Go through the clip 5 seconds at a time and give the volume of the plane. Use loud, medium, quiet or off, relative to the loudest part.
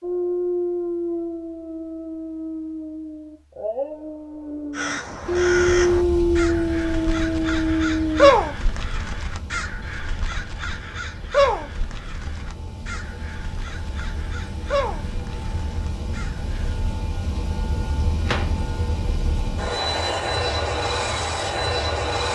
off, quiet, quiet, medium, loud.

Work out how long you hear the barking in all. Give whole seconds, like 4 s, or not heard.
8 s.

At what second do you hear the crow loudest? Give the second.
8 s.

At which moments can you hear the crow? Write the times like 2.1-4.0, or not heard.
4.8-16.8.